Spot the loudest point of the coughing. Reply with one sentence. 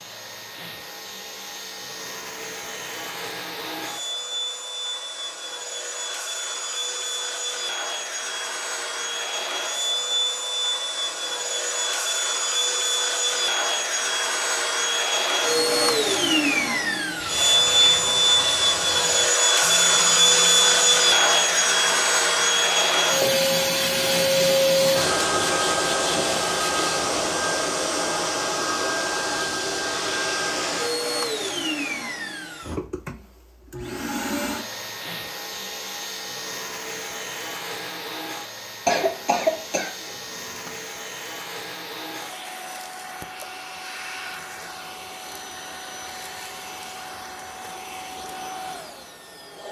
The volume of the coughing peaks at 39 seconds.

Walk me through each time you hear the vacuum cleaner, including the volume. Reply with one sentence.
You can hear the vacuum cleaner from 0.0 to 49.6 s, getting louder then quieter.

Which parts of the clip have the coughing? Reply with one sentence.
You can hear the coughing from 38.9 to 40.7 s.